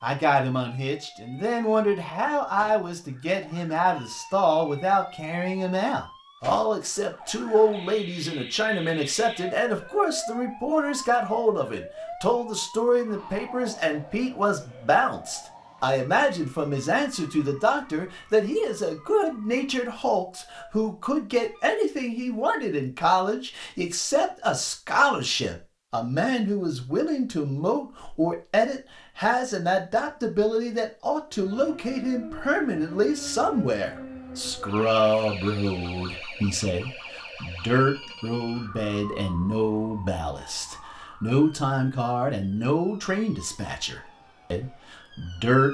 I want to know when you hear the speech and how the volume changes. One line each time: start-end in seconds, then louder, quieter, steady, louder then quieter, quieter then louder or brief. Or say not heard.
0.0-45.6 steady.